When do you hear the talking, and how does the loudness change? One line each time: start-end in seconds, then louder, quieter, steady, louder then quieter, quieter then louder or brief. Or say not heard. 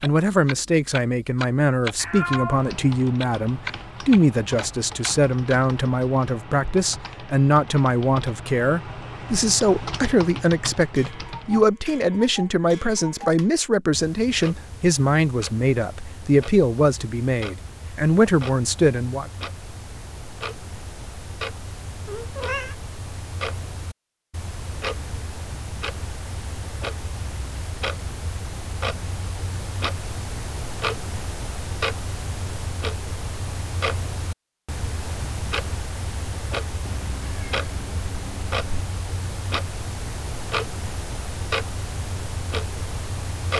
0.0-19.3 steady.